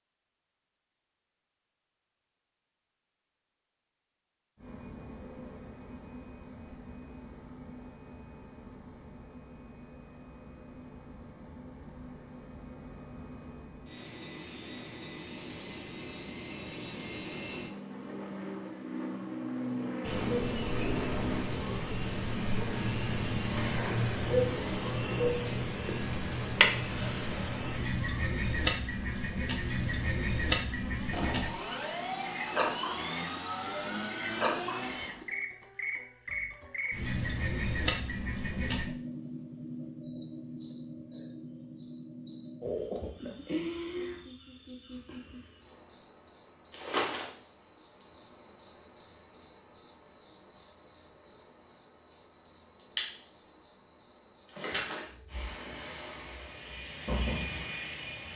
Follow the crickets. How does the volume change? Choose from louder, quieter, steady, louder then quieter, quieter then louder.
quieter.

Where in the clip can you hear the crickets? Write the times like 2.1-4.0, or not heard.
20.0-58.3.